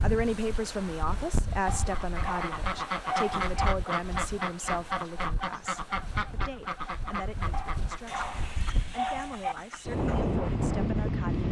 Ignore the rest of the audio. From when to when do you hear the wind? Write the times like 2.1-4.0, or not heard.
0.0-11.4.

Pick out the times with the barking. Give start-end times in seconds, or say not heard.
1.6-3.7, 7.5-9.6.